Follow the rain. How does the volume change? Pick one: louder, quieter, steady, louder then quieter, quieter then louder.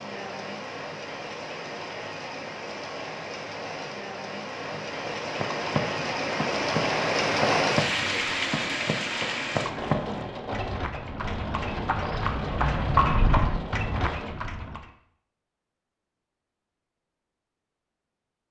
louder then quieter.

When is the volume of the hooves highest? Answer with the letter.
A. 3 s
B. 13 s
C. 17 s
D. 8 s
B.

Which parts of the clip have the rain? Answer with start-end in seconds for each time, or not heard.
0.0-14.3.